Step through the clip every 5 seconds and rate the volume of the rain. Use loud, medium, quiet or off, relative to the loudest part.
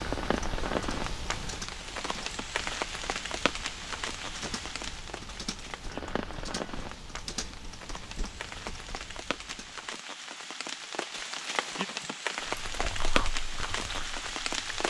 loud, medium, loud.